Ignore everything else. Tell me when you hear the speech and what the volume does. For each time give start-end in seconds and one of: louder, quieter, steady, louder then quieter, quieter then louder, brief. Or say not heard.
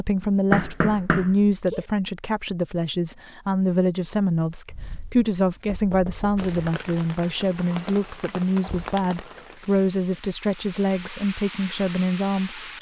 0.0-12.6 steady.